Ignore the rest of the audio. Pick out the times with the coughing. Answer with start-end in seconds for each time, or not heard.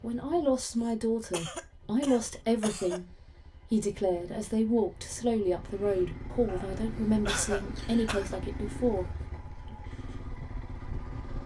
0.8-3.0, 6.5-8.4.